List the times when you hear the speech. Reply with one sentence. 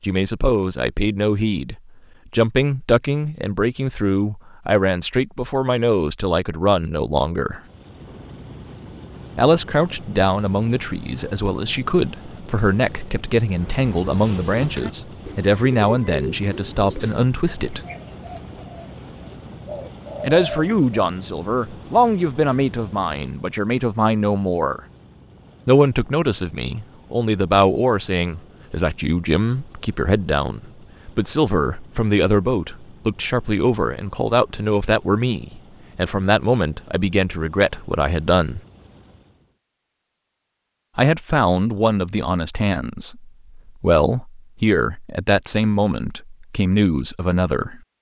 The speech can be heard from 0.0 to 7.6 s, from 9.3 to 17.8 s, from 20.2 to 24.8 s, from 25.6 to 38.6 s and from 41.0 to 47.8 s.